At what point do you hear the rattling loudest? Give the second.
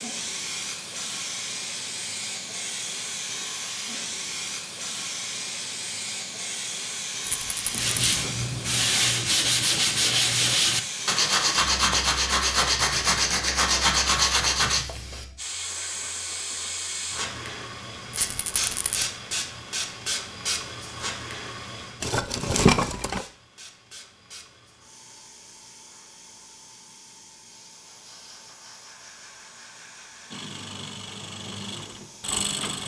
23 s.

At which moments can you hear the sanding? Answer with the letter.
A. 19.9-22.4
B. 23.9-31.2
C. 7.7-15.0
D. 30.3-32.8
C.